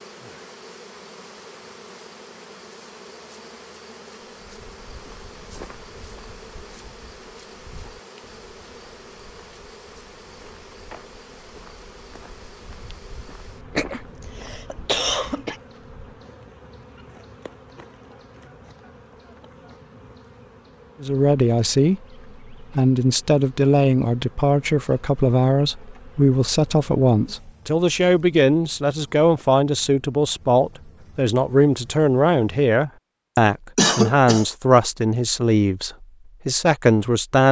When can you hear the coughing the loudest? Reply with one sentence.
The volume of the coughing peaks at 34 seconds.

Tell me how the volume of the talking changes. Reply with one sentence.
The loudness of the talking stays about the same.